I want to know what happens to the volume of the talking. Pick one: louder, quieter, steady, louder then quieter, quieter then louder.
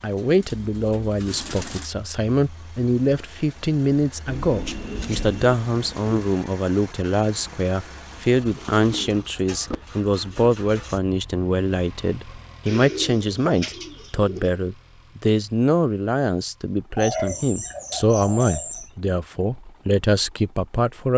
steady.